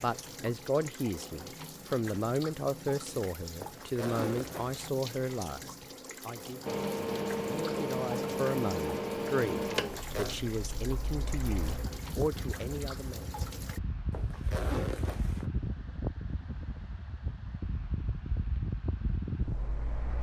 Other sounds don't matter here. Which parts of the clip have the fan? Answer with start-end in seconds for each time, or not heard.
6.7-20.1.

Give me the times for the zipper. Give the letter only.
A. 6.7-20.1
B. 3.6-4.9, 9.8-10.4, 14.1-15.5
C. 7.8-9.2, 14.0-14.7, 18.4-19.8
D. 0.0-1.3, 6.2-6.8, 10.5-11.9
B.